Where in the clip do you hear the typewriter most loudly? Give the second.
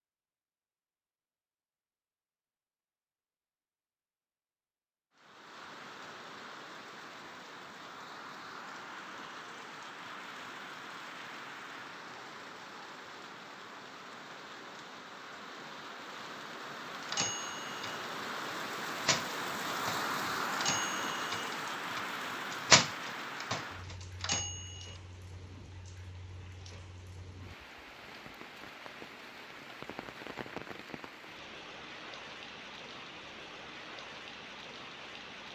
23 s.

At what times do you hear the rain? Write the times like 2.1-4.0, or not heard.
5.2-35.5.